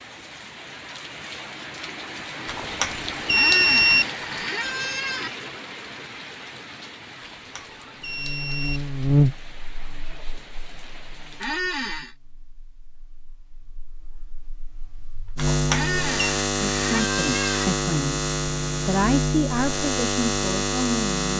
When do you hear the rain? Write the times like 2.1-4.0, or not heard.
0.0-11.6.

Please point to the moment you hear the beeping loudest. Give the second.
4 s.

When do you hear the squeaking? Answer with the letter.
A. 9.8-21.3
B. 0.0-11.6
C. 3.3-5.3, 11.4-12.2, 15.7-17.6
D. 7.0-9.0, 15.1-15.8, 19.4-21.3
C.